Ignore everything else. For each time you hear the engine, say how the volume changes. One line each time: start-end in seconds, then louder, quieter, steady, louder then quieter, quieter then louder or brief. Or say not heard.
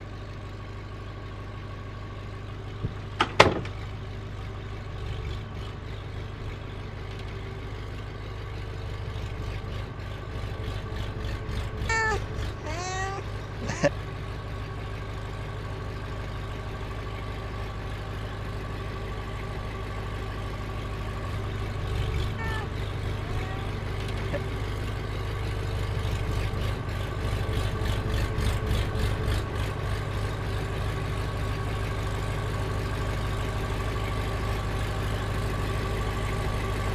0.0-36.9 louder.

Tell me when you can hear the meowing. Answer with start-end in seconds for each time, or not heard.
11.8-13.9, 22.4-24.4.